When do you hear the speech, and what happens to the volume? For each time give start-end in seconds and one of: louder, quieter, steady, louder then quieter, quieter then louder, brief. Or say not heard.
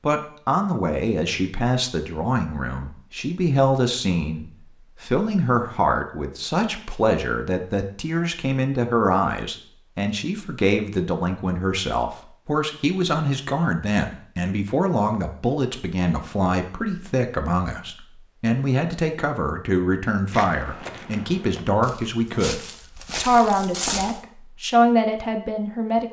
0.0-26.0 steady.